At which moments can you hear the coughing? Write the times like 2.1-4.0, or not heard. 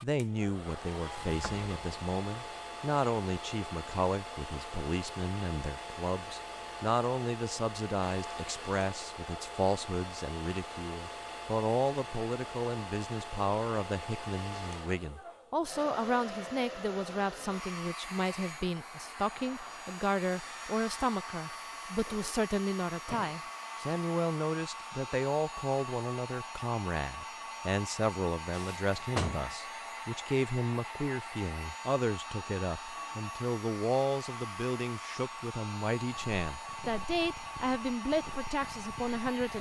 not heard.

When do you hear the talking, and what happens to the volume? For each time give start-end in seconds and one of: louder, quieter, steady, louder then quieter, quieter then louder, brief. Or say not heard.
0.0-39.5 steady.